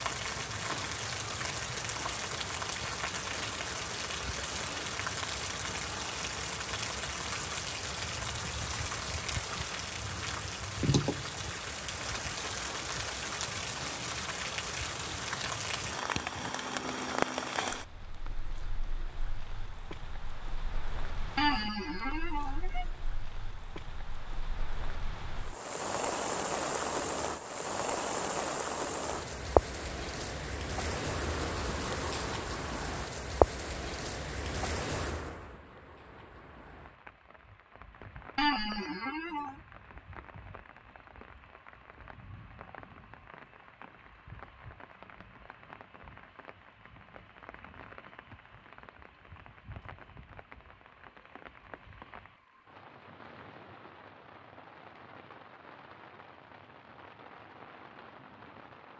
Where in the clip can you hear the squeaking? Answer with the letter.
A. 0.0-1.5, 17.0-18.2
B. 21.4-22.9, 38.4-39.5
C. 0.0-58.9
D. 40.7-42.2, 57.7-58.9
B.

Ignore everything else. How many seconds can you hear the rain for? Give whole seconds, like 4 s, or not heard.
59 s.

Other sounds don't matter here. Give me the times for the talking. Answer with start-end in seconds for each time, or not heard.
not heard.